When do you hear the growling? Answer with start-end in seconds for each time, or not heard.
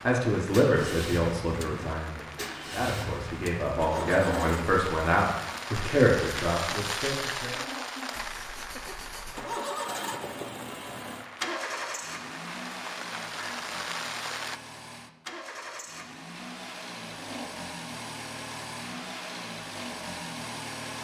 4.1-4.6, 7.5-8.9, 17.1-17.6.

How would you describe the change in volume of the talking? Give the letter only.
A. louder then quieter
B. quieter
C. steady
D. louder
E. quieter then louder
E.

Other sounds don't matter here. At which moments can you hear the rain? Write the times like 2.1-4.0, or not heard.
0.0-14.6.